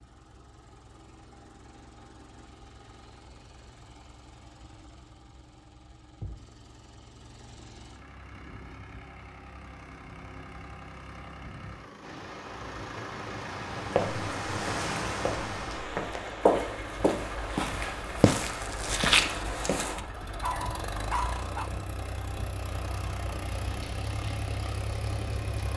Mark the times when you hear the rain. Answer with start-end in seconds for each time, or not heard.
12.0-25.7.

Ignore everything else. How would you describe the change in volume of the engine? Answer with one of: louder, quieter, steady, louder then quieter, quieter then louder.
louder.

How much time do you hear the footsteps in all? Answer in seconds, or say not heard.
6 s.